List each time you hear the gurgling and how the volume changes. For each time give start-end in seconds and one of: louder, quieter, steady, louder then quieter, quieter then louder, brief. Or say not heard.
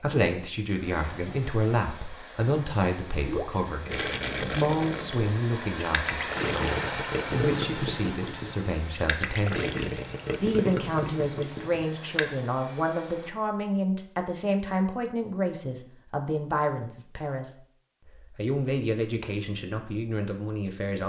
3.2-12.2 steady.